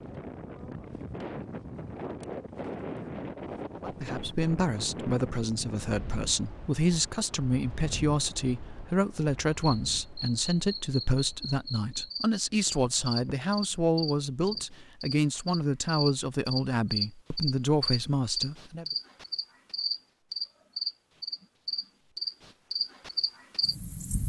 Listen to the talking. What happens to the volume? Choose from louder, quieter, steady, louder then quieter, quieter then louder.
steady.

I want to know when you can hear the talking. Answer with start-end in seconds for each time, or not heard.
3.8-18.9.